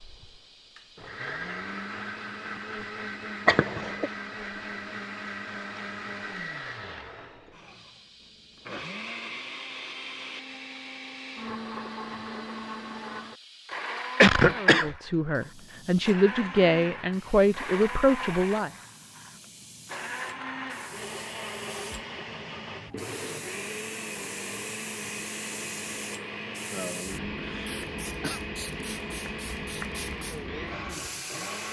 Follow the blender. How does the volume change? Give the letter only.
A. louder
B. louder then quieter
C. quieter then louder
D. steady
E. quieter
D.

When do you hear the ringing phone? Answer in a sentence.
The ringing phone can't be heard in this clip.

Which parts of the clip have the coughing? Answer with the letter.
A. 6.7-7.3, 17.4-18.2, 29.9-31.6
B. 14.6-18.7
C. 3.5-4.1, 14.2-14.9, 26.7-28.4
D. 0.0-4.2
C.